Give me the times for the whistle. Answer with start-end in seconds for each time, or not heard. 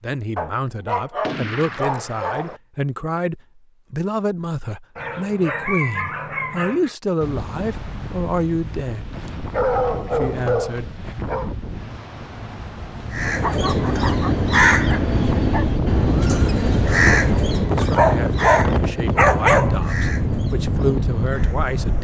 not heard.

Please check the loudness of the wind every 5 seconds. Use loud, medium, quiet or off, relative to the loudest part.
off, medium, medium, loud, loud.